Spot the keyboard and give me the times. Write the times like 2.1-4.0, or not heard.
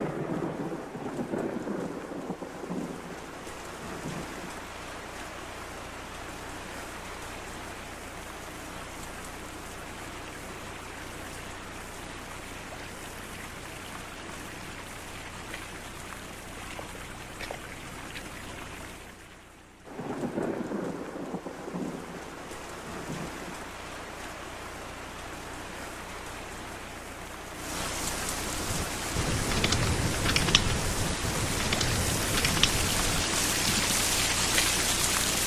28.4-34.0.